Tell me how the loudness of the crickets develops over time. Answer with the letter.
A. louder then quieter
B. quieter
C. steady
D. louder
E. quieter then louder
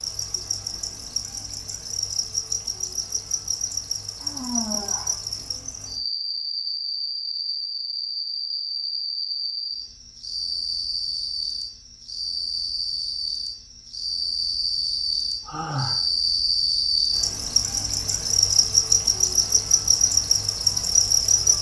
D.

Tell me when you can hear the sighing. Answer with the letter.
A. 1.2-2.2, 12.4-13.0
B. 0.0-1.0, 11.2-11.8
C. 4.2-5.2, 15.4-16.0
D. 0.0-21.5
C.